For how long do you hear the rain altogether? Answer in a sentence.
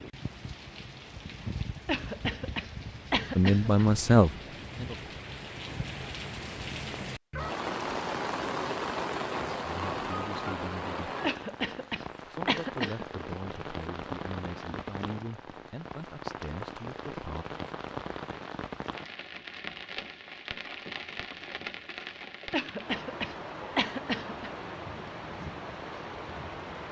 You can hear the rain for 27 seconds altogether.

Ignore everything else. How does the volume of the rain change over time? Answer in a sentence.
The loudness of the rain goes up, then down.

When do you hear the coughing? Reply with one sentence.
The coughing can be heard from 1.9 to 3.9 s, from 11.2 to 13.1 s and from 22.5 to 24.5 s.